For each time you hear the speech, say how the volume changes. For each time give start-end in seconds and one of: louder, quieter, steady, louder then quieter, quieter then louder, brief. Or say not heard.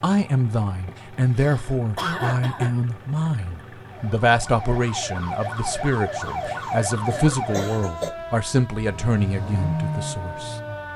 0.0-10.6 steady.